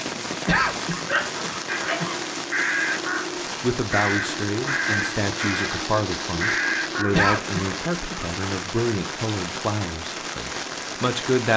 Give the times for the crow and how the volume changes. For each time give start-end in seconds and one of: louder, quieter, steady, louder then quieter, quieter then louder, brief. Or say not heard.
1.6-7.2 steady.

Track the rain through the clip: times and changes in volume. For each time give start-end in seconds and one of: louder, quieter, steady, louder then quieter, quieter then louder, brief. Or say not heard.
0.0-11.5 steady.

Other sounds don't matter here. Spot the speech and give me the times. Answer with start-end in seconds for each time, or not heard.
3.6-11.5.